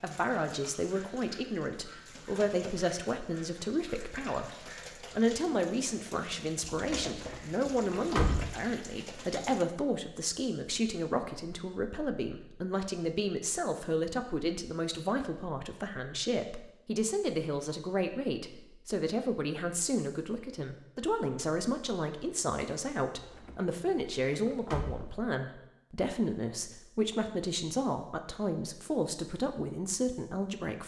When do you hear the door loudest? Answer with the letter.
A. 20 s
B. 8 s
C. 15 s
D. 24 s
B.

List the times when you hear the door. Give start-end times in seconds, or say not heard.
6.8-8.5, 23.1-25.1.